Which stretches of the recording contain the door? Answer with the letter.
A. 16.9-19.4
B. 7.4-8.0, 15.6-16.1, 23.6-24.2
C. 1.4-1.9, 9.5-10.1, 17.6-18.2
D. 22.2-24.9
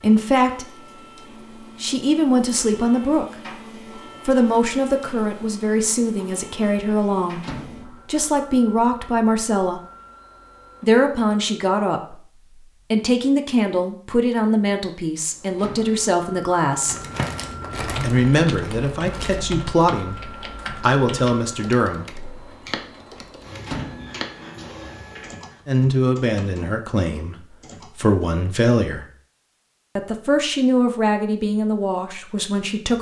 B.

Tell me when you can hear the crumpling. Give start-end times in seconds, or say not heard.
16.9-19.4.